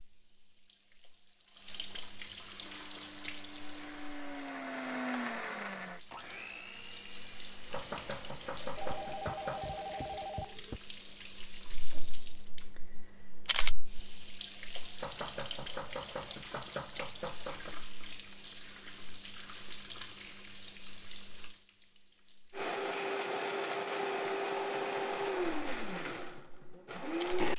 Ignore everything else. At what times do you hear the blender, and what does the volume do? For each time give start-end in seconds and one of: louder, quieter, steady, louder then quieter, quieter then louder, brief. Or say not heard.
2.5-10.3 louder then quieter
22.5-27.5 quieter.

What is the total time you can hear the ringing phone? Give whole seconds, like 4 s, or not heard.
2 s.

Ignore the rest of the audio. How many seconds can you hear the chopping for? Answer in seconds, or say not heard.
5 s.